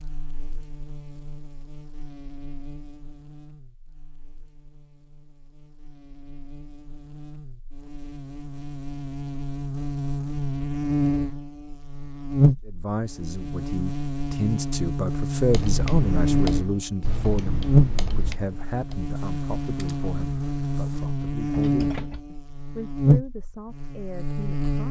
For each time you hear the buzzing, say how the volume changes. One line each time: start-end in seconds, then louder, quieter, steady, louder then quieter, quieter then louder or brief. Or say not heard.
0.0-24.8 louder.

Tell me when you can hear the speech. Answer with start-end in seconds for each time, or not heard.
12.7-24.8.